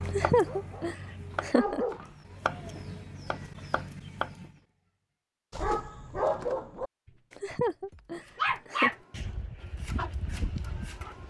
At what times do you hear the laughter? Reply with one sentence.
The laughter can be heard from 0.1 to 1.9 s and from 7.3 to 8.9 s.